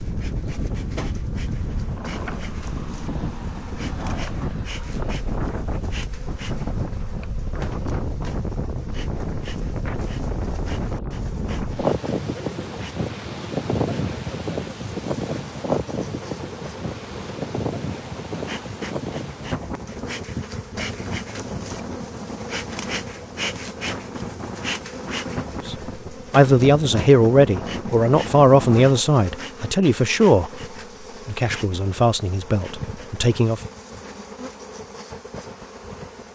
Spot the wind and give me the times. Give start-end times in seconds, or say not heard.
0.0-29.0.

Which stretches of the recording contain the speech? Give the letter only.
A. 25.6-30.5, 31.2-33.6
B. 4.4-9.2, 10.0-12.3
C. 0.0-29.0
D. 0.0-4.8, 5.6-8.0
A.